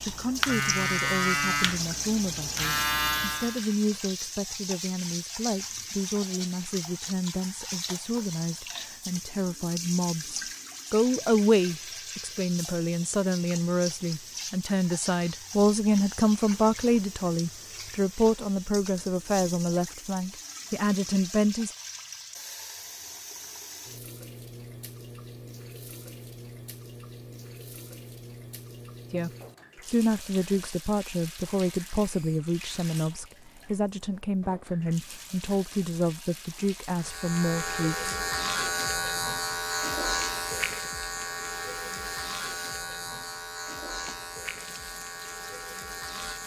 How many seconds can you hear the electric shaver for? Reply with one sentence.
The electric shaver can be heard for 13 seconds in total.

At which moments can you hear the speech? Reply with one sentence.
You can hear the speech from 0.1 to 21.8 s and from 29.1 to 38.1 s.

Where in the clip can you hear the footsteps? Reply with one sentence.
You can't hear the footsteps here.